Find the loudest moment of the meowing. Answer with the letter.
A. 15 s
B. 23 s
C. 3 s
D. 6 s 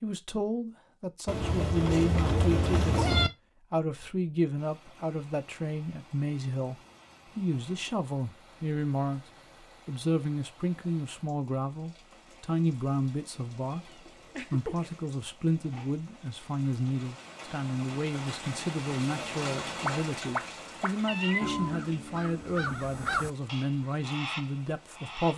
C.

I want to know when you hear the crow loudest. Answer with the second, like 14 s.
23 s.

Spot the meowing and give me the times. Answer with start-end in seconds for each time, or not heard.
1.2-3.3, 13.6-14.9, 19.9-21.6.